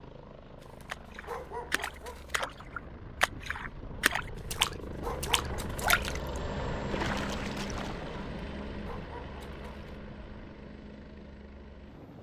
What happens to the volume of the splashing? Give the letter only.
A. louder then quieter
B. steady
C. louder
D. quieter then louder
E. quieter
A.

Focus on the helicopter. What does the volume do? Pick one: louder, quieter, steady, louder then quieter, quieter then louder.
louder then quieter.